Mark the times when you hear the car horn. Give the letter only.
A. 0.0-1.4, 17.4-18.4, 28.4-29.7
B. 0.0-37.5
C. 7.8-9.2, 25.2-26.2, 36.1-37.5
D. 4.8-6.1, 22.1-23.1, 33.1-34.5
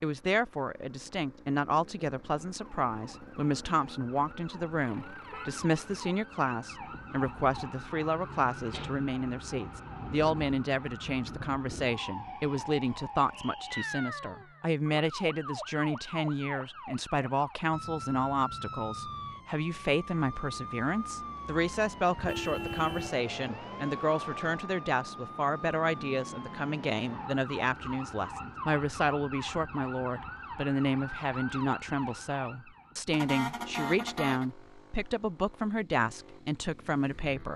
D.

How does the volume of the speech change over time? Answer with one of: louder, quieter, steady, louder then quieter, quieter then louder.
steady.